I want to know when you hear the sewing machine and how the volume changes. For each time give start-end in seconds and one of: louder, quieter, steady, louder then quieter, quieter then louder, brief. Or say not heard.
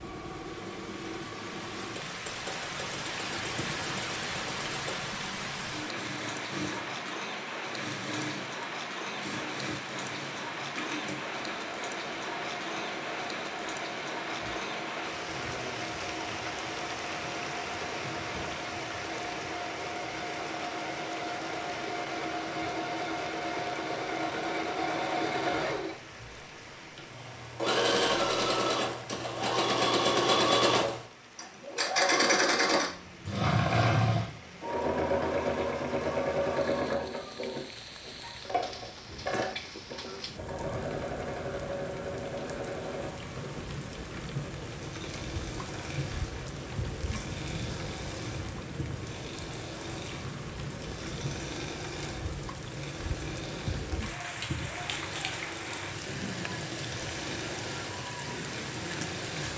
0.0-59.5 louder then quieter.